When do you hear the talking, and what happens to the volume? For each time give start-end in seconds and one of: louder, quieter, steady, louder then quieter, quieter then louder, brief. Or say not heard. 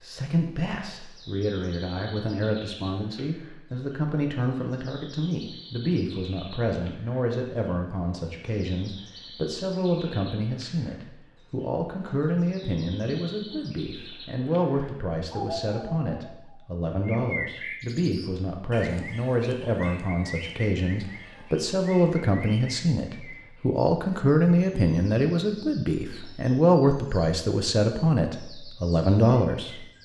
0.0-29.9 louder.